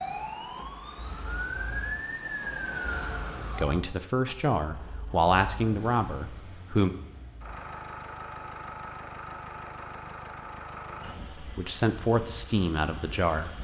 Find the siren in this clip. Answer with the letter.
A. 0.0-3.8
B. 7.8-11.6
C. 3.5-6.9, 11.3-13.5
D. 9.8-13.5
A.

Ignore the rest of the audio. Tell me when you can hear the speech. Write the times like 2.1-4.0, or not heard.
3.5-6.9, 11.3-13.5.